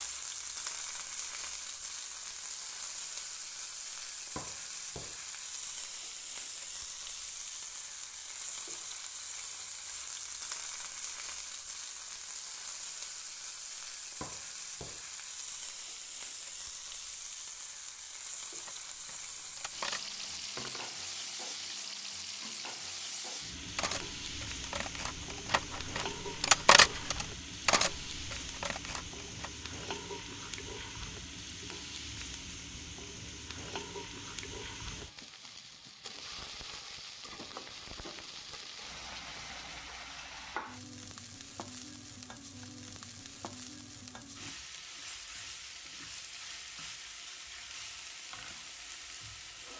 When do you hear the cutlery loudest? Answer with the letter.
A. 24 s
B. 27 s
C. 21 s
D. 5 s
B.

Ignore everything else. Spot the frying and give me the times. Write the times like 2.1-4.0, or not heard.
0.0-49.7.